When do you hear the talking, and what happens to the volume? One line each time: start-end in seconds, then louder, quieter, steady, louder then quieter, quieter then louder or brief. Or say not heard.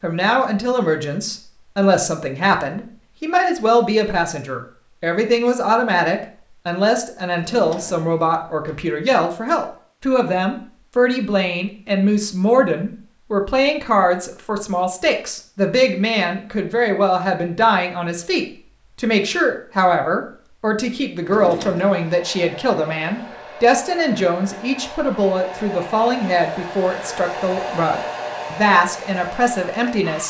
0.0-30.2 steady.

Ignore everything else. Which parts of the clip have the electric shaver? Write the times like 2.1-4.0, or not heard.
not heard.